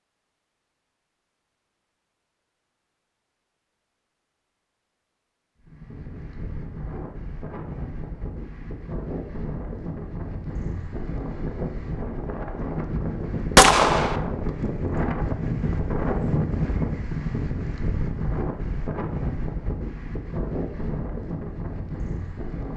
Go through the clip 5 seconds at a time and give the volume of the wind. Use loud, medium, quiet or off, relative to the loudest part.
off, medium, loud, loud, medium.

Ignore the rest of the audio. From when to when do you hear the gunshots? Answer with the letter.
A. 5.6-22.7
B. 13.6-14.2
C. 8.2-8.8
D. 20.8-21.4
B.